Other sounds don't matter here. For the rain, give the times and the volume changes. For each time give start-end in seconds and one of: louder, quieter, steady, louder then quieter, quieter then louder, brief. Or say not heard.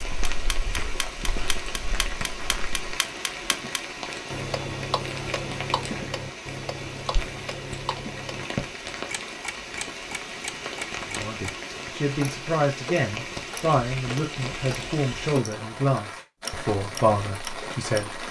0.0-18.2 steady.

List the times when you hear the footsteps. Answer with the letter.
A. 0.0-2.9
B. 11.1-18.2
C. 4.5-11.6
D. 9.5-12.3
A.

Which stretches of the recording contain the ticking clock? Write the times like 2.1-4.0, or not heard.
0.0-18.0.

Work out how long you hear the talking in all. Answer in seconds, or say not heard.
7 s.